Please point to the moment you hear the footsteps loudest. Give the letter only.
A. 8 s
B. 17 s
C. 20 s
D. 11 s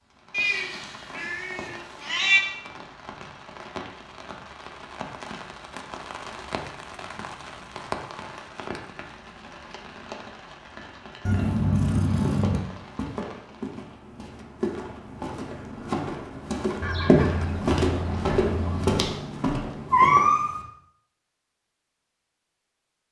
B.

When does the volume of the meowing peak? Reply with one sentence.
The volume of the meowing peaks at 20 seconds.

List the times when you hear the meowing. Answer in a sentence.
You can hear the meowing from 0.3 to 2.5 s, from 11.2 to 12.6 s and from 19.9 to 20.6 s.